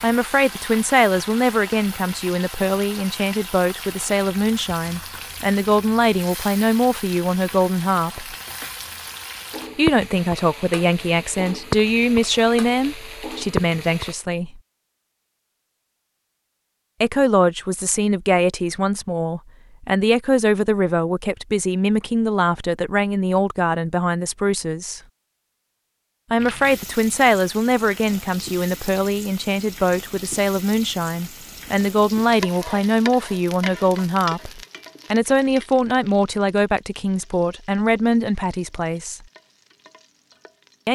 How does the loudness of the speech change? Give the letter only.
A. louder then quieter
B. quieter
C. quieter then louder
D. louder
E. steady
E.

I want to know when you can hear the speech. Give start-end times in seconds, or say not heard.
0.0-8.3, 9.8-14.6, 17.0-25.0, 26.3-39.2.